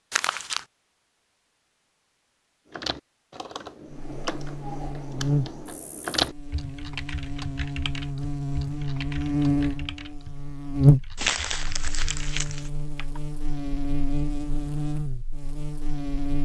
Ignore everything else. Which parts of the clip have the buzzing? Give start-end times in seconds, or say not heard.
3.9-16.4.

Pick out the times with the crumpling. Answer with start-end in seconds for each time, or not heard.
0.1-0.7, 10.7-12.7.